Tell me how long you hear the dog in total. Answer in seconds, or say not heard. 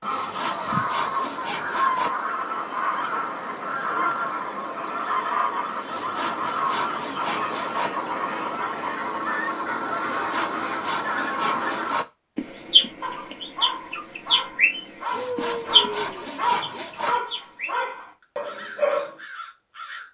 6 s.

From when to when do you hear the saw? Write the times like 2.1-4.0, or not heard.
0.1-2.1, 5.8-7.9, 10.0-12.1, 15.1-17.1.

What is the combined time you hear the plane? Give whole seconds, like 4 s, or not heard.
not heard.